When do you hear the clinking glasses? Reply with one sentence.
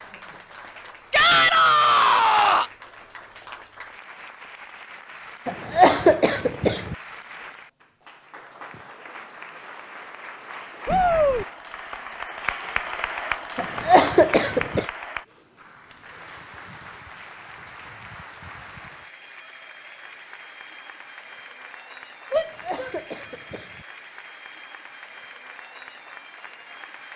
The clinking glasses can't be heard in this clip.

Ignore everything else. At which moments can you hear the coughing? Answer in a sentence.
You can hear the coughing from 5.5 to 7.0 s, from 13.6 to 14.8 s and from 22.3 to 23.9 s.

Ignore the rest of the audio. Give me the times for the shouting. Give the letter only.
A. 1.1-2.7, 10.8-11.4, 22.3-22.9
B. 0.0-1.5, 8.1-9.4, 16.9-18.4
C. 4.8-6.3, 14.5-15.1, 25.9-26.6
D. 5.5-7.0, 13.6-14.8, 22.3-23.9
A.